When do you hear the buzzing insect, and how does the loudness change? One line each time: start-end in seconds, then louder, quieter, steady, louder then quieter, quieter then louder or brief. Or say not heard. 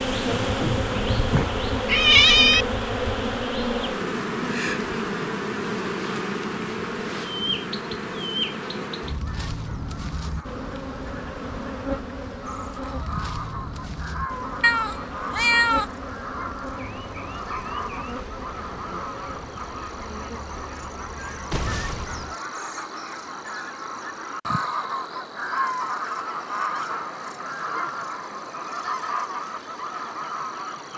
0.0-22.4 quieter.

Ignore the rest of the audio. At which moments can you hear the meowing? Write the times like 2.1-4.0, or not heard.
0.6-2.6, 14.6-15.8, 21.1-22.2.